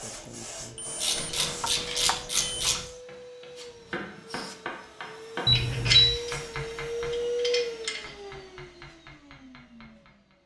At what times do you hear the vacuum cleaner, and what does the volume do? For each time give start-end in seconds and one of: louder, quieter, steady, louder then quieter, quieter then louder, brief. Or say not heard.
0.0-10.2 louder then quieter.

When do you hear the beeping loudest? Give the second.
6 s.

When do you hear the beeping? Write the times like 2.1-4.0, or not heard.
0.8-2.7, 5.5-6.2.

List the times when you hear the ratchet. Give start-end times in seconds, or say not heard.
1.0-2.9, 5.5-8.1.